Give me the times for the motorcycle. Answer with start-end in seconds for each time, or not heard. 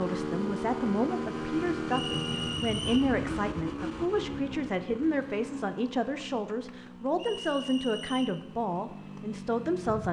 0.0-10.0.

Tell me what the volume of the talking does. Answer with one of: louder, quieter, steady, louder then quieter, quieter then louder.
steady.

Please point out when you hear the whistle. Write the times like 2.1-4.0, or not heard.
1.9-3.1, 7.2-8.4.